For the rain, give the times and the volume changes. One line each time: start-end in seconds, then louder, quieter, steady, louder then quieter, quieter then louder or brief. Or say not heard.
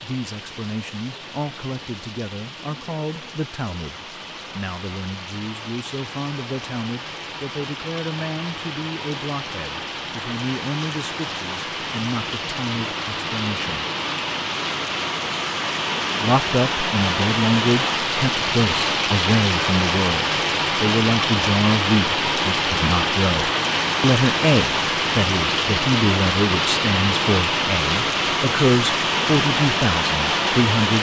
0.0-30.9 louder.